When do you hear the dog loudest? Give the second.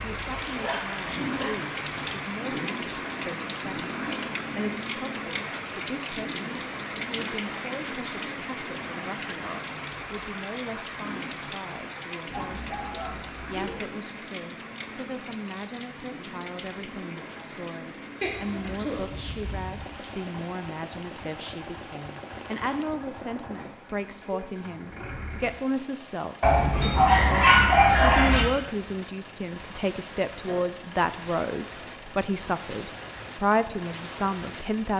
28 s.